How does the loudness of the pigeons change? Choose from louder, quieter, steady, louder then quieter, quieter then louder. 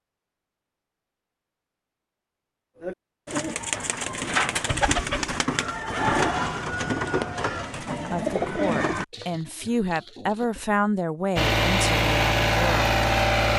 quieter.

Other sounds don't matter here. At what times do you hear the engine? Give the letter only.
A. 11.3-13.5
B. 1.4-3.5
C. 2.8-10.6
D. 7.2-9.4
A.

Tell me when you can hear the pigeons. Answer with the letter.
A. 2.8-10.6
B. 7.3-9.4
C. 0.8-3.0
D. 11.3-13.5
A.